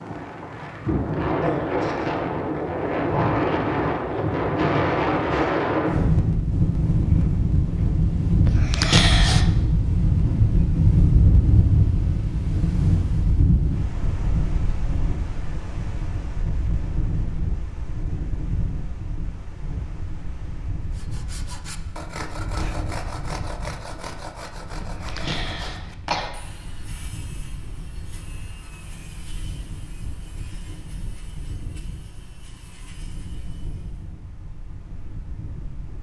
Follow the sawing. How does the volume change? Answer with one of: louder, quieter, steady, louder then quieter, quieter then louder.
quieter.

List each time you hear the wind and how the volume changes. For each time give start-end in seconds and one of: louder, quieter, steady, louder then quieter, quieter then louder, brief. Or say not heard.
0.0-35.9 quieter.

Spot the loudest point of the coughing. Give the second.
9 s.